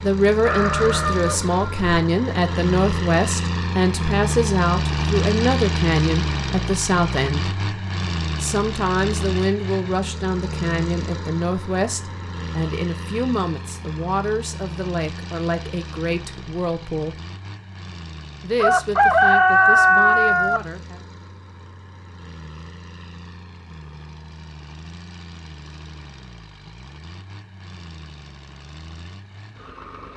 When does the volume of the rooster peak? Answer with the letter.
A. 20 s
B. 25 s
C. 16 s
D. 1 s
A.